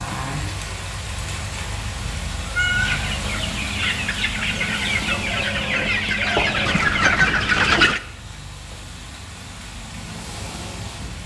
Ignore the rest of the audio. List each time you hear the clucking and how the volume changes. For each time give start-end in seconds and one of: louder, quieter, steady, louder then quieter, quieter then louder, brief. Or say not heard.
2.7-8.0 louder.